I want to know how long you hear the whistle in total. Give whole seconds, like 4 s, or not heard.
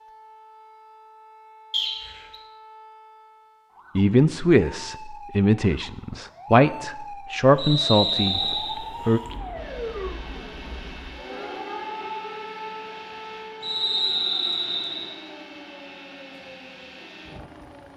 3 s.